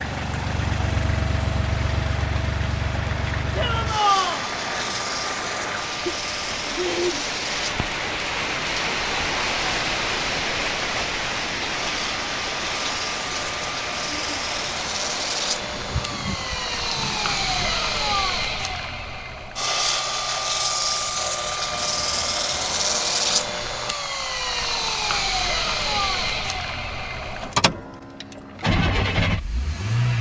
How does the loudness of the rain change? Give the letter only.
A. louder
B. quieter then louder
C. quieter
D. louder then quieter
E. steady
D.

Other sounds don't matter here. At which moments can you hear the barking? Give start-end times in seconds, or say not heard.
not heard.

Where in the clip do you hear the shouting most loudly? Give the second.
4 s.